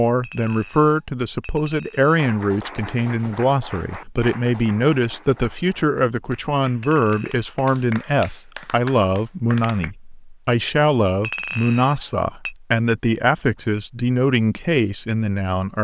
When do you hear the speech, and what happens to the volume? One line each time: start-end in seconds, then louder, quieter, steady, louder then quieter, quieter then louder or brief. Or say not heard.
0.0-15.7 steady.